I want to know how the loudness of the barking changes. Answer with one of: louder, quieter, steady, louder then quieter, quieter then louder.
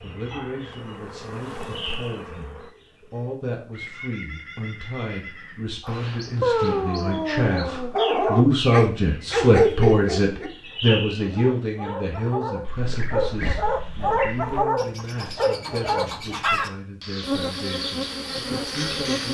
quieter then louder.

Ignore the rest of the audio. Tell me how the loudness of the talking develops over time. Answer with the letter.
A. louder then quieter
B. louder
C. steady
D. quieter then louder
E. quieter
A.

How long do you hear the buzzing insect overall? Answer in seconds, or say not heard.
5 s.